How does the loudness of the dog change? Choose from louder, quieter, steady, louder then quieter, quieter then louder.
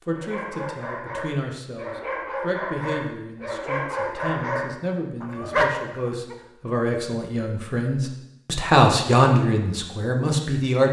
louder.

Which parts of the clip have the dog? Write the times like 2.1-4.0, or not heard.
0.1-6.3.